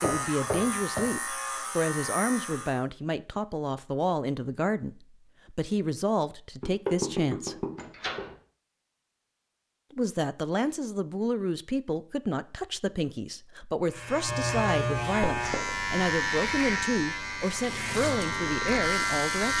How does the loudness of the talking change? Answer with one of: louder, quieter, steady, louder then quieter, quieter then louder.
steady.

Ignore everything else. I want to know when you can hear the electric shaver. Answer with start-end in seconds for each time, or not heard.
0.0-2.8, 13.8-19.5.